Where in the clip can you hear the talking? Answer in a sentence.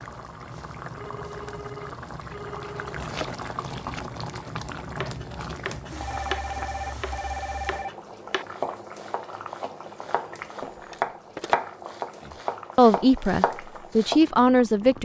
You can hear the talking from 12.8 to 15.0 s.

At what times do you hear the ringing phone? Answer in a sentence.
The ringing phone can be heard from 0.9 to 3.0 s, from 6.0 to 7.9 s and from 10.9 to 11.6 s.